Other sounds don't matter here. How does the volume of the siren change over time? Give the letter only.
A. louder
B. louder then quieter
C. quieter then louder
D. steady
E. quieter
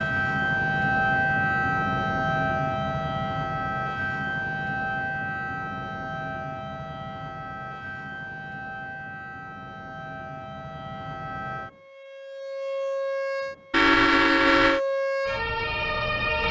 C.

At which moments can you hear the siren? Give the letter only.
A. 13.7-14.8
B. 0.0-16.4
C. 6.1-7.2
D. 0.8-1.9
B.